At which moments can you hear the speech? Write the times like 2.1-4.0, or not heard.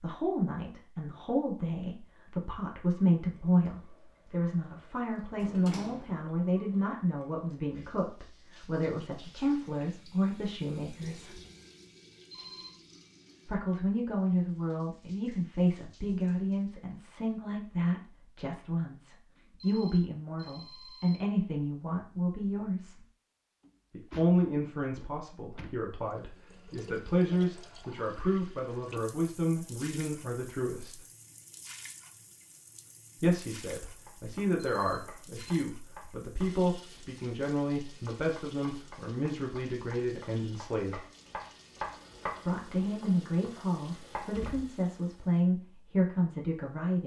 0.0-11.4, 13.4-23.1, 23.9-31.0, 33.2-41.0, 42.5-47.0.